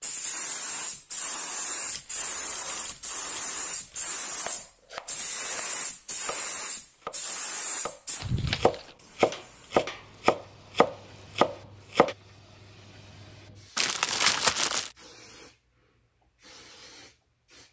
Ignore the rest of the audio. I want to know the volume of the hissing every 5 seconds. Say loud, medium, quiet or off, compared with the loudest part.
loud, loud, quiet, quiet.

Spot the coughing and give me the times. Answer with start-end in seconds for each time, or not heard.
not heard.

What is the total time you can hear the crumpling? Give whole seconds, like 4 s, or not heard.
4 s.